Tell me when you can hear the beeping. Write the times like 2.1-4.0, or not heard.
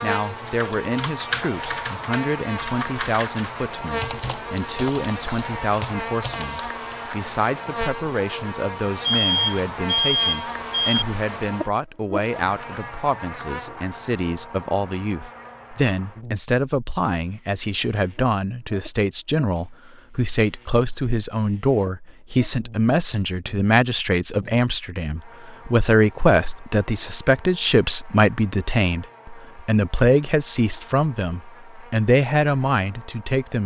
9.0-11.1.